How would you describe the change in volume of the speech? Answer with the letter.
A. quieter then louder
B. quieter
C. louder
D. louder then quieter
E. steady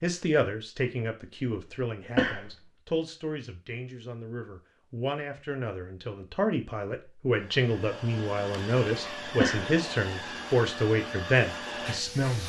C.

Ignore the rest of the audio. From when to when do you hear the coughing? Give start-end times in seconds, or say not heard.
2.1-2.6, 9.3-9.8.